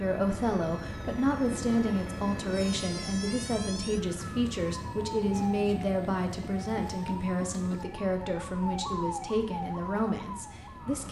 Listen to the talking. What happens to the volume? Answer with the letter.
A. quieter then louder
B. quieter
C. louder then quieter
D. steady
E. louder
D.